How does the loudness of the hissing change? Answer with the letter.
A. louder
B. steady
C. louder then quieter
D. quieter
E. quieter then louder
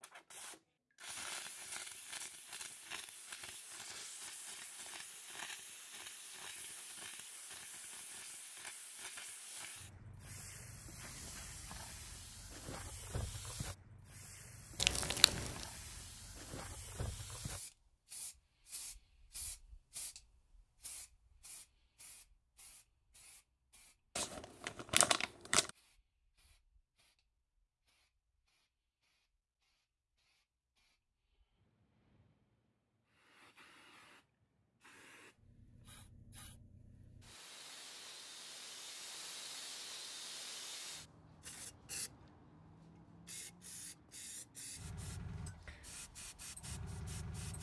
E.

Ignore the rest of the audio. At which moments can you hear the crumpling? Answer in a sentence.
You can hear the crumpling from 14.8 to 15.7 s and from 24.1 to 25.7 s.